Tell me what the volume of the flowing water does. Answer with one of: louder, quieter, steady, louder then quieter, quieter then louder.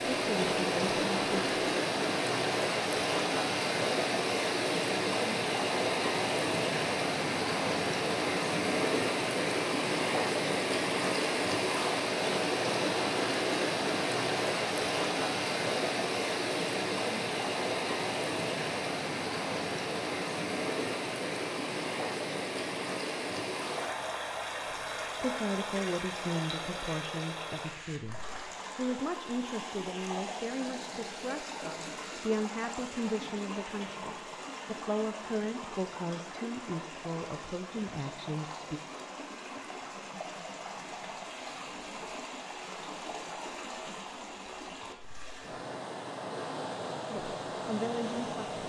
quieter.